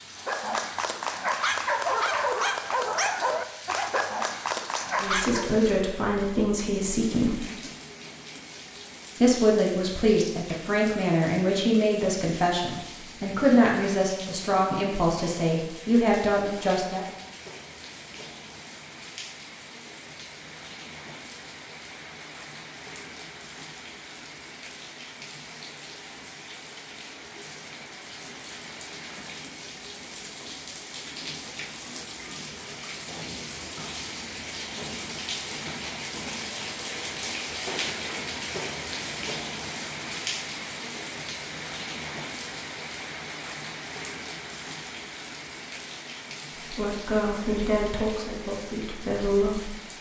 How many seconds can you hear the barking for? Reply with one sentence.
You can hear the barking for 5 seconds altogether.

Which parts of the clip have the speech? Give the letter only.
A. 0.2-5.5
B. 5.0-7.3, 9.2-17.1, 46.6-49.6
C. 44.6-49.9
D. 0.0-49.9
B.